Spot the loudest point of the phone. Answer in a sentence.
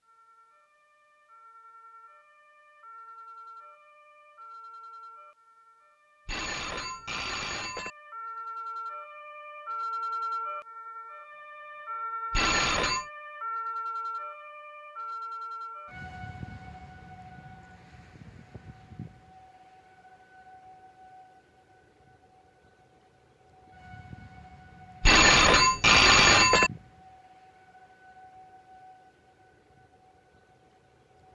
The volume of the phone peaks at 26 seconds.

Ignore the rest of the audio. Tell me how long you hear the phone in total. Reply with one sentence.
The phone can be heard for 4 seconds in total.